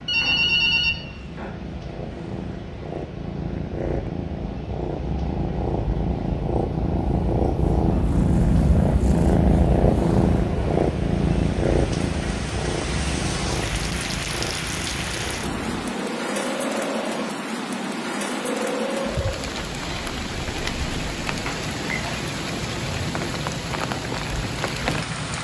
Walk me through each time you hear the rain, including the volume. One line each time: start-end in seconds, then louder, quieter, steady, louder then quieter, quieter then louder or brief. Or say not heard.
0.0-25.3 louder.